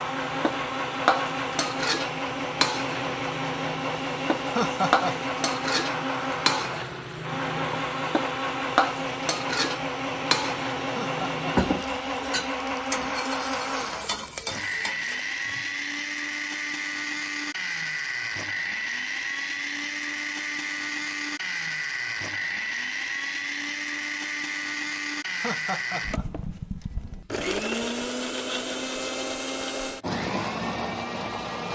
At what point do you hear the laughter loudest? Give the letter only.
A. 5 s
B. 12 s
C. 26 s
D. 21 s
A.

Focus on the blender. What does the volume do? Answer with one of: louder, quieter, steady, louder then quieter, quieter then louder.
steady.